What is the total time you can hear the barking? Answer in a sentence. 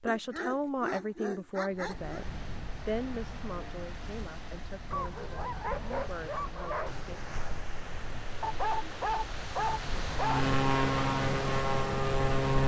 The barking can be heard for 6 seconds in total.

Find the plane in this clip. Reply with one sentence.
The plane can be heard from 10.2 to 12.6 s.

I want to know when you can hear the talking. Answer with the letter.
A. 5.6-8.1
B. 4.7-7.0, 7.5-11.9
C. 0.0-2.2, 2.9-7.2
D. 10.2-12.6
C.